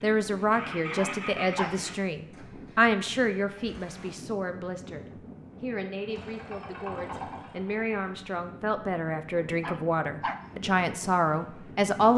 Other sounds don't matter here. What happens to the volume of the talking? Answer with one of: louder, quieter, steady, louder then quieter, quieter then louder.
quieter then louder.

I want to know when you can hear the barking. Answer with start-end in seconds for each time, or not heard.
0.9-1.9, 9.6-10.6.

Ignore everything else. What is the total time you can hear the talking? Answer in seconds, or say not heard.
12 s.